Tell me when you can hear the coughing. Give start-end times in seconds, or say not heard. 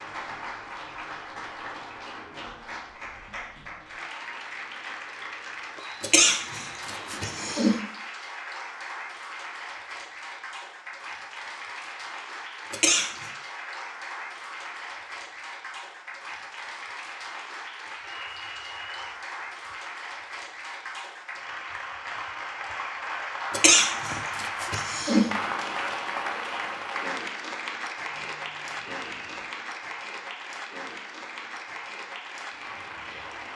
6.0-7.8, 12.7-13.3, 23.5-25.2.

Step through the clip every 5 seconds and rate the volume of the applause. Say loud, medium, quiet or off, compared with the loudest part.
medium, medium, medium, medium, loud, loud, medium.